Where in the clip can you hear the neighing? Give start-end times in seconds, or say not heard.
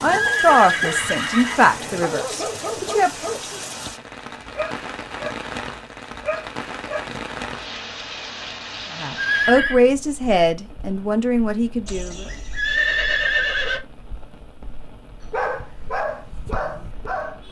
0.1-1.8, 9.2-9.8, 11.8-13.8.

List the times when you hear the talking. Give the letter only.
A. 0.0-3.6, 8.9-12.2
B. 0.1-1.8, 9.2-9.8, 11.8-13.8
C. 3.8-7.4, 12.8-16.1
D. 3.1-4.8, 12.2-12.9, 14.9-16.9
A.